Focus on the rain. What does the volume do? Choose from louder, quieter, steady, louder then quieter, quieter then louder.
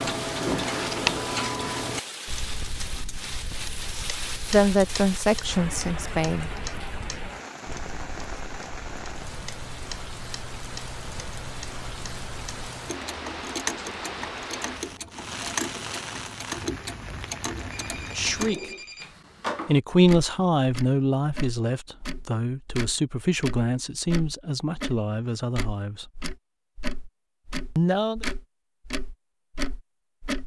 steady.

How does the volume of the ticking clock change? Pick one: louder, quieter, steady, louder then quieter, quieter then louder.
quieter then louder.